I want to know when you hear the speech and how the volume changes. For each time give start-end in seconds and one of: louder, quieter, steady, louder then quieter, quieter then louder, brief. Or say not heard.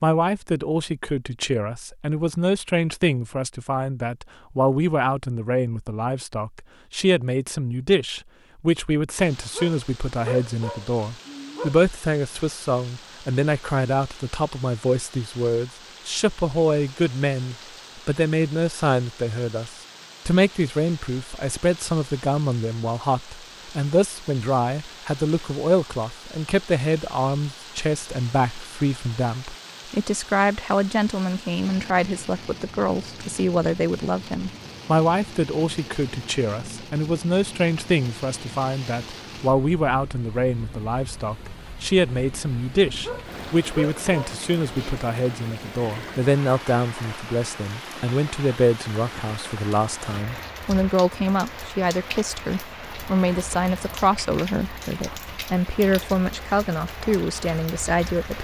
0.0-58.3 steady.